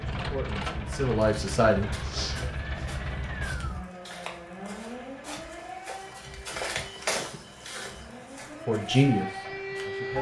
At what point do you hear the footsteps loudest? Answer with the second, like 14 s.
7 s.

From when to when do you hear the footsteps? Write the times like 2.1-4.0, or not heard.
1.2-9.3.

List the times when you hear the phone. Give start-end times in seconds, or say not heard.
not heard.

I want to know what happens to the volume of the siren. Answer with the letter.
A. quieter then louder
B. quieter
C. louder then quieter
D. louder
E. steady
A.